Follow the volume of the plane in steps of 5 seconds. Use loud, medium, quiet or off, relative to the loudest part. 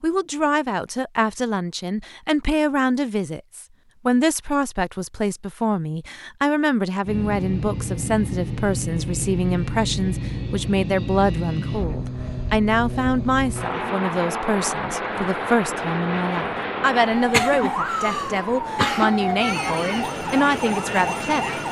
off, loud, loud, loud, medium.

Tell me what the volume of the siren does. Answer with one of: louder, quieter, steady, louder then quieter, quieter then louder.
steady.